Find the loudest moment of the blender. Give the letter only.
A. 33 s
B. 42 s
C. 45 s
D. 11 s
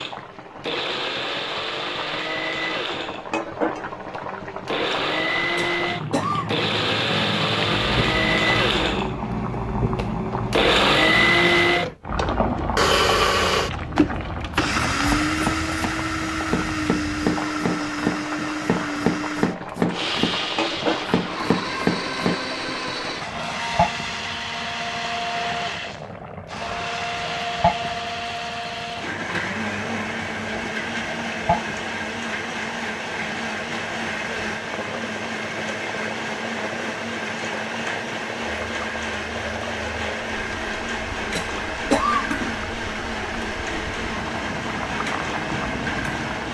D.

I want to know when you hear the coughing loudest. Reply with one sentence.
The volume of the coughing peaks at 42 seconds.